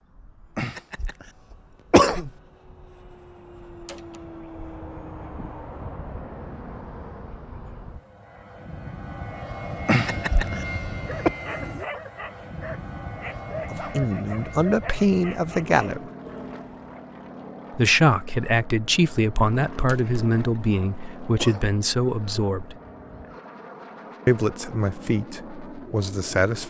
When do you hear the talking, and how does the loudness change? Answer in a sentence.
You can hear the talking briefly from 13.7 to 16.1 s; from 17.7 to 22.8 s, at a steady volume; and briefly from 24.2 to 26.6 s.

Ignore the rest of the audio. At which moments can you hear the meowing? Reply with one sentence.
The meowing can't be heard in this clip.